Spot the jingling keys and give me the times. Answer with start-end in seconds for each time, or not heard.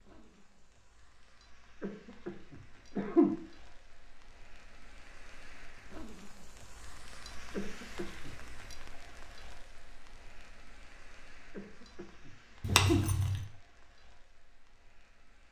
12.6-13.4.